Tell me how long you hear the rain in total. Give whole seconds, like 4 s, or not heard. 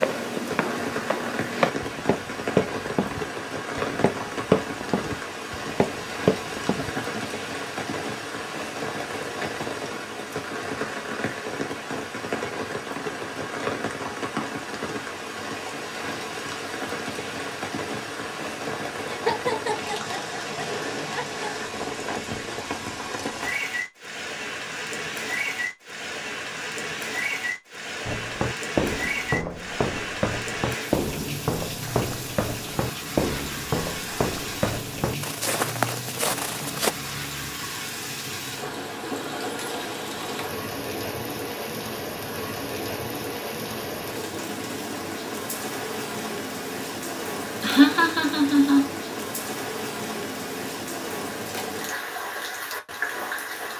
54 s.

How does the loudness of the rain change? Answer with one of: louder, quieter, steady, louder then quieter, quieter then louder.
steady.